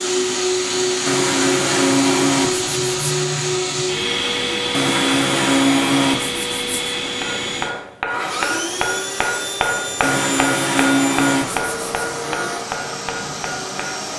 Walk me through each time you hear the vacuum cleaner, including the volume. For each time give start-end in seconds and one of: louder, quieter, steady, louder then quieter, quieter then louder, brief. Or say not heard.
0.0-14.1 quieter.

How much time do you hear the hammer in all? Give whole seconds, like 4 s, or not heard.
7 s.